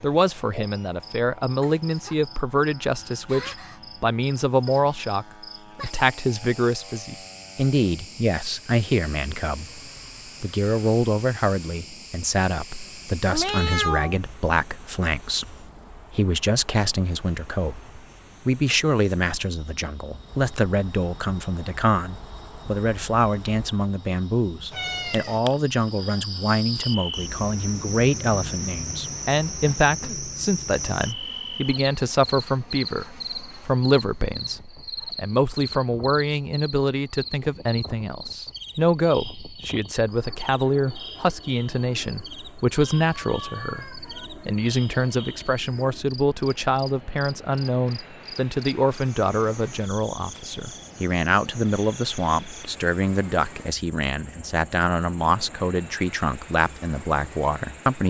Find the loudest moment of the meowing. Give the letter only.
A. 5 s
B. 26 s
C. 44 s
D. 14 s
D.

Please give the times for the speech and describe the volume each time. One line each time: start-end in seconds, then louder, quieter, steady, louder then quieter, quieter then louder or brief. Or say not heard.
0.0-9.8 steady
10.4-58.0 steady.